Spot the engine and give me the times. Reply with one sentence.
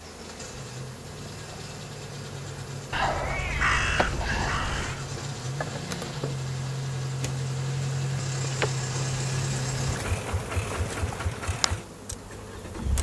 You can hear the engine from 0.0 to 12.9 s.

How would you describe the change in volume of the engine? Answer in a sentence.
The volume of the engine goes up, then down.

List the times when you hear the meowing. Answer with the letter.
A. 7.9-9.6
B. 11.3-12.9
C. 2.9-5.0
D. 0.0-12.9
C.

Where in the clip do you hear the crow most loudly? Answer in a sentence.
The loudest moment of the crow is at 4 seconds.